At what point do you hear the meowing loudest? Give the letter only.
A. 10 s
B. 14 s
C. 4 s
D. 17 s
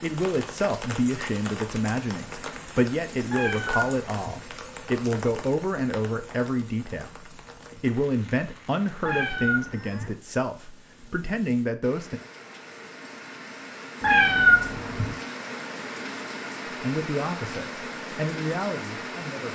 B.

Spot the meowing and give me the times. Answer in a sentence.
The meowing can be heard from 3.2 to 4.4 s, from 9.0 to 10.2 s and from 14.0 to 15.2 s.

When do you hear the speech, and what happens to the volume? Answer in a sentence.
The speech can be heard from 0.0 to 12.2 s, at a steady volume; and briefly from 16.8 to 19.5 s.